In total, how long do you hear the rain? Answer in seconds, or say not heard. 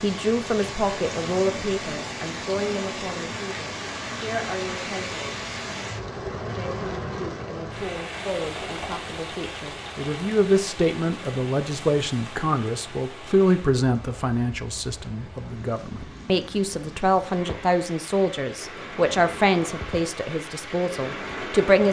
22 s.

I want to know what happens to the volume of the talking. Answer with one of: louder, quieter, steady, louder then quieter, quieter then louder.
quieter then louder.